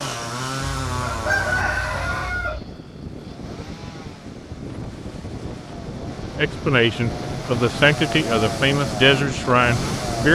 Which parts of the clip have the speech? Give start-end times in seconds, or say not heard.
6.3-10.2.